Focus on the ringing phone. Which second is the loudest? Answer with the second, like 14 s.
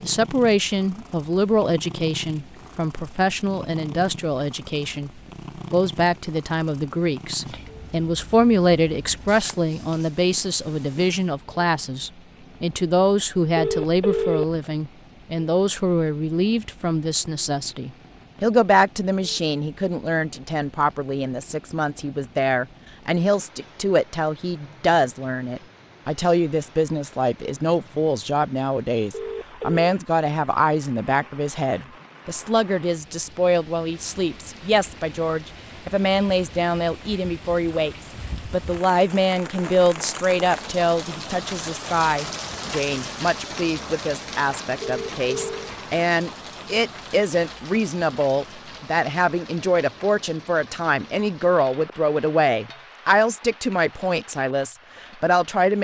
14 s.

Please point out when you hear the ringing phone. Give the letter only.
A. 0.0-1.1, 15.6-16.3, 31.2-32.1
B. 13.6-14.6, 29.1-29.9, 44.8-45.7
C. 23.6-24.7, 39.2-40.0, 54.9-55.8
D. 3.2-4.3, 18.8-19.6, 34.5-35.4
B.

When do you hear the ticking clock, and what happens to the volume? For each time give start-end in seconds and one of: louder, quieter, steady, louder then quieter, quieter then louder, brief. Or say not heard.
not heard.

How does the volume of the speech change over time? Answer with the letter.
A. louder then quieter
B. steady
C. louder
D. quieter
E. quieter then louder
B.